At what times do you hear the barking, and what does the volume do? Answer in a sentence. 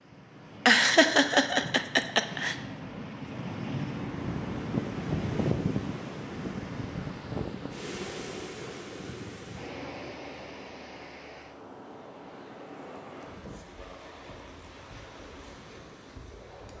The barking can't be heard in this clip.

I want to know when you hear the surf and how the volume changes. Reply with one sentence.
The surf can be heard from 0.0 to 16.7 s, getting louder then quieter.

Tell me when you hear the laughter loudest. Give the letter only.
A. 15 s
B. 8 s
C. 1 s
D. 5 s
C.